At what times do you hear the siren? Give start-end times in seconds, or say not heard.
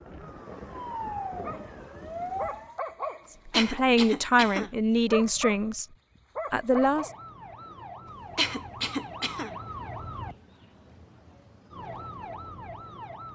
0.0-2.8, 6.7-13.2.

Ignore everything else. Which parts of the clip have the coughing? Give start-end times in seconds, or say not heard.
3.5-4.7, 8.3-9.5.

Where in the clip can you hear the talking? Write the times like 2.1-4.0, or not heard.
3.5-5.8, 6.5-7.1.